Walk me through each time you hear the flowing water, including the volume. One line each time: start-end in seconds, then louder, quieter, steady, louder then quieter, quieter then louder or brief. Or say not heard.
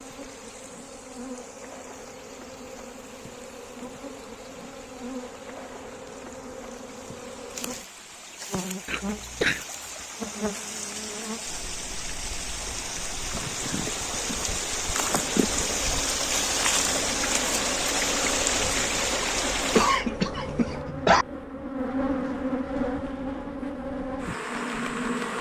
0.0-20.0 louder.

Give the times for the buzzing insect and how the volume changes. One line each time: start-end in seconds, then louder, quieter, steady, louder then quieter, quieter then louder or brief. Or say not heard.
0.0-25.3 louder.